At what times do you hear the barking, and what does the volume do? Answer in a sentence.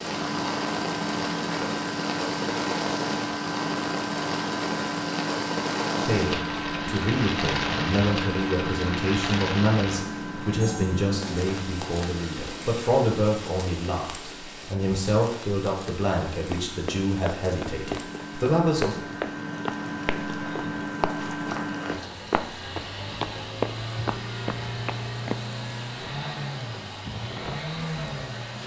The barking can't be heard in this clip.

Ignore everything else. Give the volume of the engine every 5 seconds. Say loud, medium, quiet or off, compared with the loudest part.
loud, loud, medium, medium, loud, loud.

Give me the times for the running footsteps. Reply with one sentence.
The running footsteps can be heard from 16.4 to 25.4 s.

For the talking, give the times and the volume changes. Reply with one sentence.
The talking can be heard from 6.0 to 18.9 s, at a steady volume.